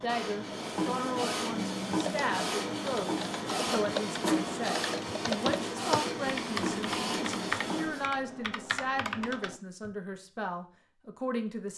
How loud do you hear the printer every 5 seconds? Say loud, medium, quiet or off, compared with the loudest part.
loud, loud, off.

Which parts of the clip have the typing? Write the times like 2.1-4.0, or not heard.
1.5-9.9.